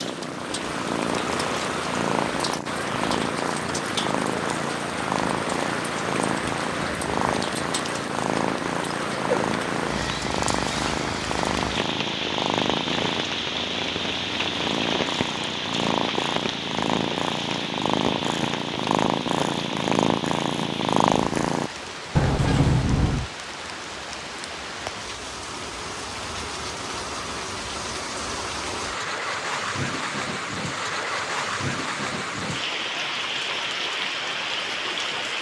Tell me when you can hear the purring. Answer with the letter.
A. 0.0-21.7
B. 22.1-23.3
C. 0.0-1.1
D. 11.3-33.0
A.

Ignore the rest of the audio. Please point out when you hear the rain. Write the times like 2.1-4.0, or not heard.
0.0-35.3.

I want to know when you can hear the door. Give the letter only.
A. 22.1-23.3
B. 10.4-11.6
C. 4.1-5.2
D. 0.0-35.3
A.